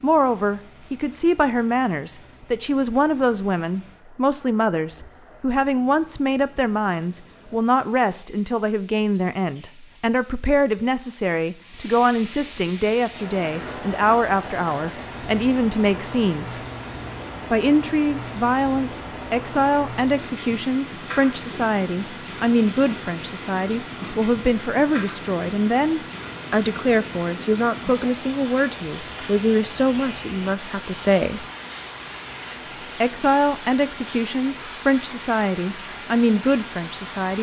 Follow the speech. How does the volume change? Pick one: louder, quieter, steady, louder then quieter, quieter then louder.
steady.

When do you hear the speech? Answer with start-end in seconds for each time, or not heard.
0.0-16.6, 17.5-31.4, 32.6-37.3.